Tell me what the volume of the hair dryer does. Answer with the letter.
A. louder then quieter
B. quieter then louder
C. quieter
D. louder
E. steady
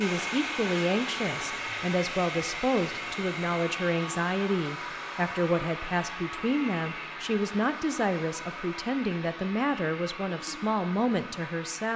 C.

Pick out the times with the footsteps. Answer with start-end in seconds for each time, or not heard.
not heard.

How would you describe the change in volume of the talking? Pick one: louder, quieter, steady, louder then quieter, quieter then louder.
steady.